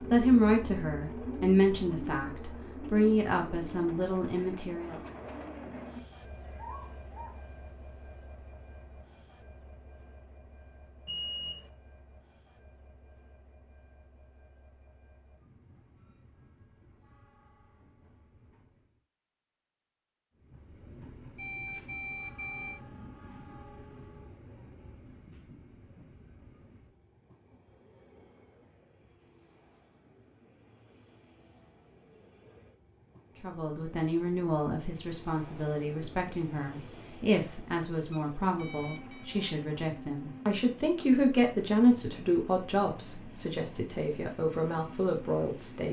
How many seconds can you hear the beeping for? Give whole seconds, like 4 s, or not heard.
3 s.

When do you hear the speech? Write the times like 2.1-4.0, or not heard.
0.0-5.0, 33.4-45.8.